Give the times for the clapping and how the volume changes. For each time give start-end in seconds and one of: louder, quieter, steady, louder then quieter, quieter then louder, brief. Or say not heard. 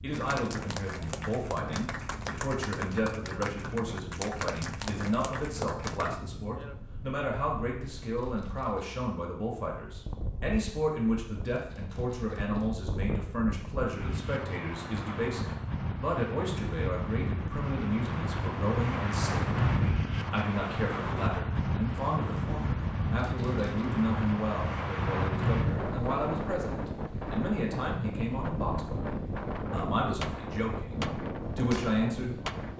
0.1-6.2 steady
30.2-32.7 brief.